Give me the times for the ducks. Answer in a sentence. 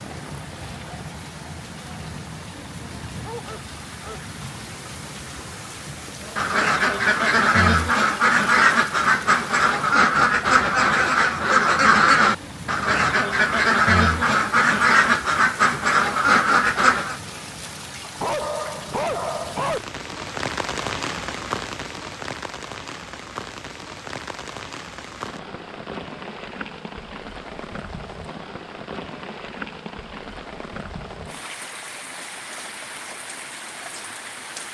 The ducks can be heard from 6.3 to 17.2 s.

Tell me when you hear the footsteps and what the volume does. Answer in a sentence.
The footsteps can't be heard in this clip.